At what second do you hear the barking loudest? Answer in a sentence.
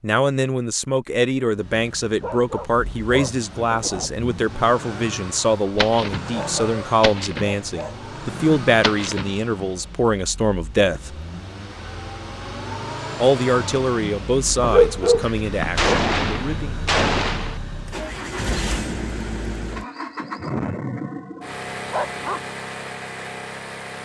The volume of the barking peaks at 15 seconds.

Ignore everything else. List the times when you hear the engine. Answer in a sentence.
You can hear the engine from 1.6 to 23.9 s.